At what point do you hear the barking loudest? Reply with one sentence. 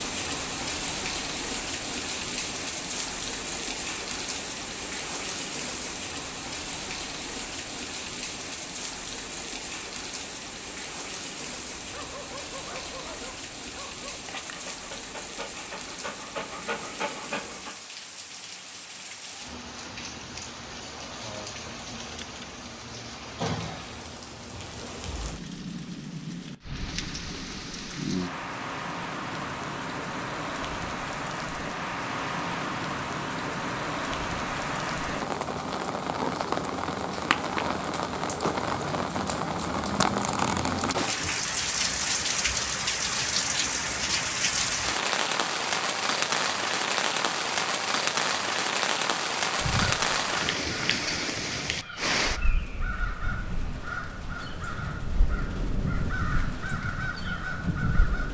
The loudest moment of the barking is at 17 seconds.